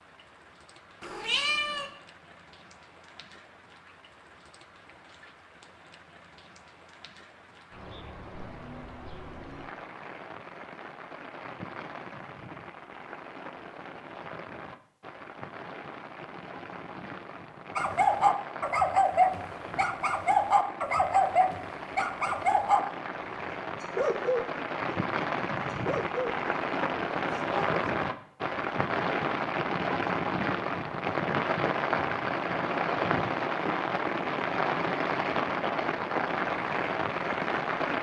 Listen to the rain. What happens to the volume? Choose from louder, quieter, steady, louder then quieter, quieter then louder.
louder.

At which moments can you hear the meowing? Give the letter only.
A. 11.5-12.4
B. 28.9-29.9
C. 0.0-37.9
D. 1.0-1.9
D.